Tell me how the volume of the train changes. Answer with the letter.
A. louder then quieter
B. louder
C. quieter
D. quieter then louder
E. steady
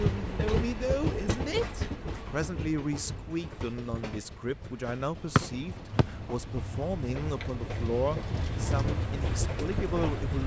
D.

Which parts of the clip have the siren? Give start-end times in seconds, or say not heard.
not heard.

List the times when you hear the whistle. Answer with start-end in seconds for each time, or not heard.
5.3-6.0.